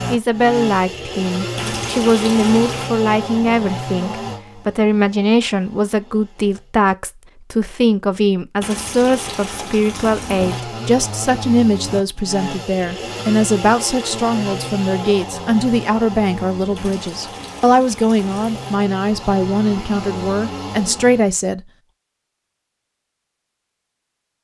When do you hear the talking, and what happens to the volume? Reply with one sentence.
The talking can be heard from 0.1 to 21.6 s, at a steady volume.